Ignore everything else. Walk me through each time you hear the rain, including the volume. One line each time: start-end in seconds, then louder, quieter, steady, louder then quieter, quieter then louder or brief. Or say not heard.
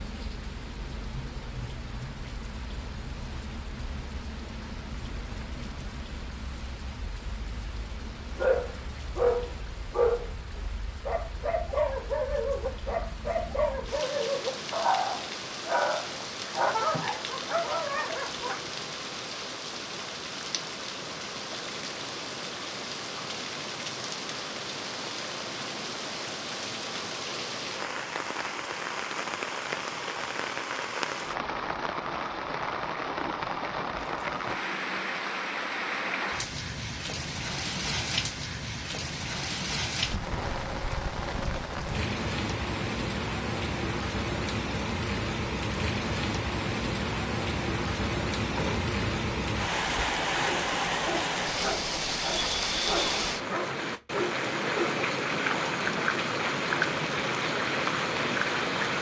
0.0-58.9 louder.